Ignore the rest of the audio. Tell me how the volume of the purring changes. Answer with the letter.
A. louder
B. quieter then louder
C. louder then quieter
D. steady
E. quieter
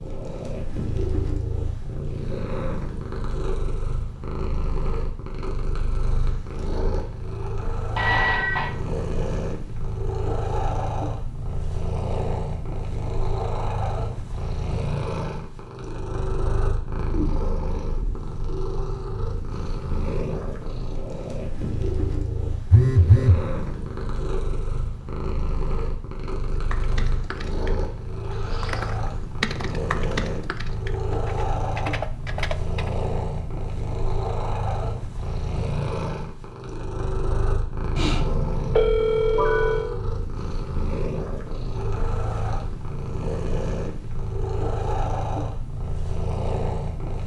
D.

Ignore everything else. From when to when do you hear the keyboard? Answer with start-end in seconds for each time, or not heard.
26.6-32.9.